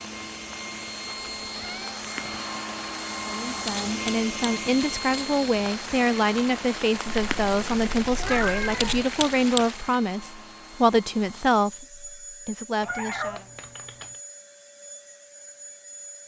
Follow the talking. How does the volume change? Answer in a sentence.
The loudness of the talking stays about the same.